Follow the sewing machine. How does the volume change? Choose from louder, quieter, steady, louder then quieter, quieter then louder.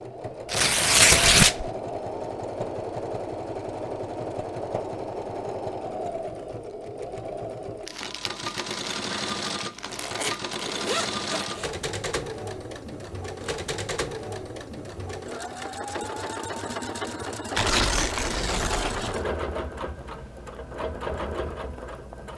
steady.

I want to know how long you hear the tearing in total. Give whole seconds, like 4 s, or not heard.
5 s.